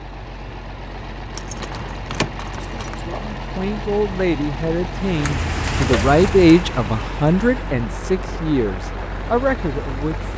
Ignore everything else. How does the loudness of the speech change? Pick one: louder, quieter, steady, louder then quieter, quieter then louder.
louder then quieter.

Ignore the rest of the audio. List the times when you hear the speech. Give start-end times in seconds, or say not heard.
3.0-10.3.